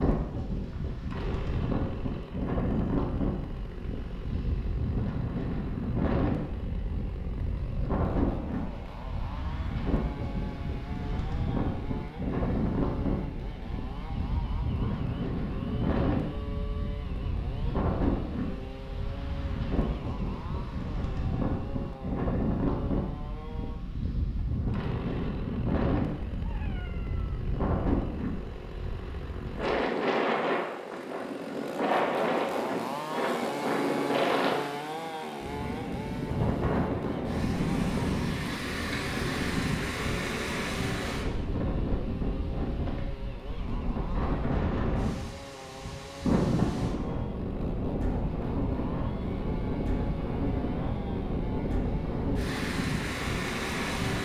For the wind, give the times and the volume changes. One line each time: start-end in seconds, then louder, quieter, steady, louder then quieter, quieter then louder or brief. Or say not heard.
0.0-54.2 steady.